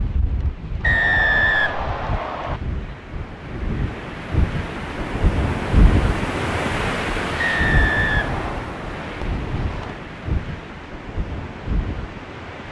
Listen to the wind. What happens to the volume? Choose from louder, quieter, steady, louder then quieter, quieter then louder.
louder then quieter.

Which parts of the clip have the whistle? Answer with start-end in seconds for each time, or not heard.
0.8-2.6, 7.3-8.7.